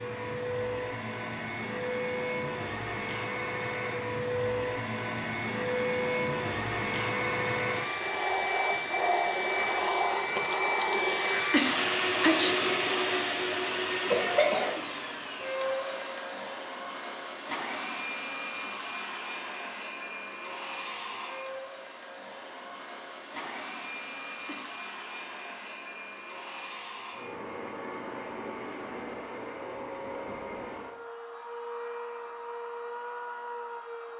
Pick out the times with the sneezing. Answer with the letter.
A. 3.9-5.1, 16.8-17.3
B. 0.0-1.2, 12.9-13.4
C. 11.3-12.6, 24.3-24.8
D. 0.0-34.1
C.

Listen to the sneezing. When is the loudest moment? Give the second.
12 s.